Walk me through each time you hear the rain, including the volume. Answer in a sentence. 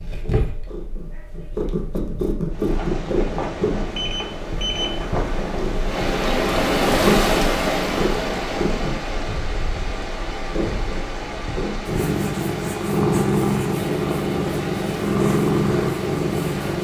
You can hear the rain from 2.5 to 16.7 s, getting louder then quieter.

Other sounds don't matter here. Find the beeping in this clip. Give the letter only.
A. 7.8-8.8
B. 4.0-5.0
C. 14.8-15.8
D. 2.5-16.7
B.